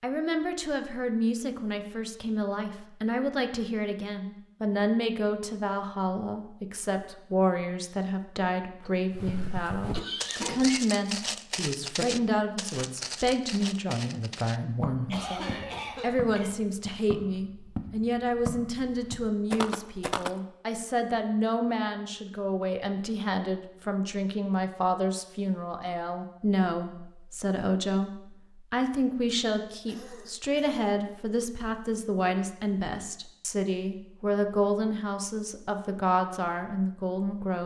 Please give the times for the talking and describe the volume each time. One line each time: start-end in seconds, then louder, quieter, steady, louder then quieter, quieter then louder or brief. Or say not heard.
0.0-37.6 steady.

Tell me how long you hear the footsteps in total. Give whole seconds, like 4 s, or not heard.
11 s.